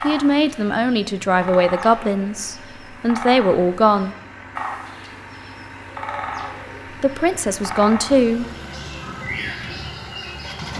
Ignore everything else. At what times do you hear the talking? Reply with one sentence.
You can hear the talking from 0.0 to 4.2 s and from 7.0 to 8.4 s.